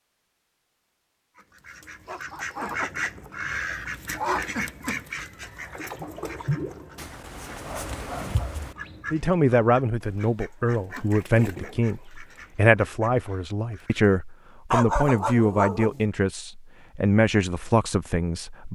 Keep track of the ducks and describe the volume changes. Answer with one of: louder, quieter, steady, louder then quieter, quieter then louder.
quieter.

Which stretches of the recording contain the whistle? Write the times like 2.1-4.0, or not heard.
not heard.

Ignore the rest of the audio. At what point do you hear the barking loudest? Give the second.
15 s.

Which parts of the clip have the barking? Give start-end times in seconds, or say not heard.
2.0-2.8, 7.0-8.8, 14.7-16.1.